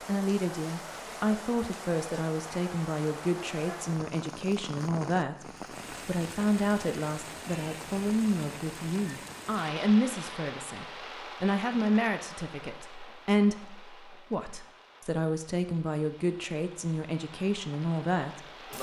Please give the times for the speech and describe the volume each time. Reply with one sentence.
You can hear the speech from 0.1 to 18.4 s, at a steady volume.